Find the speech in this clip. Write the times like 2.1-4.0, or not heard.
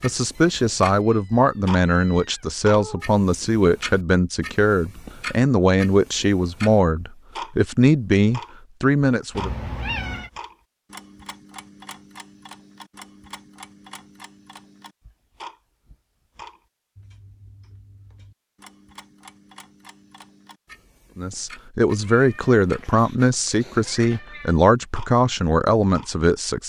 0.0-9.5, 21.1-26.6.